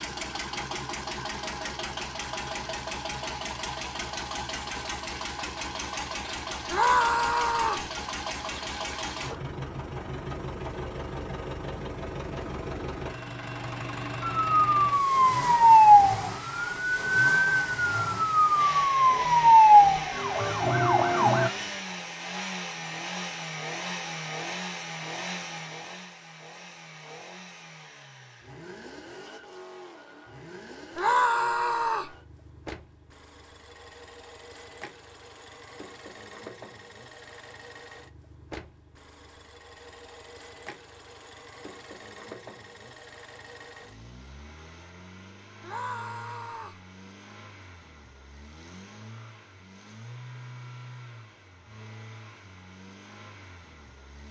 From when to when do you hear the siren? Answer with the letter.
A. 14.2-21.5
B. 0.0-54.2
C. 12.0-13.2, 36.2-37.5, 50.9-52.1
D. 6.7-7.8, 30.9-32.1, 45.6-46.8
A.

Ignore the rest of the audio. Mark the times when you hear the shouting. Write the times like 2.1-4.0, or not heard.
6.7-7.8, 30.9-32.1, 45.6-46.8.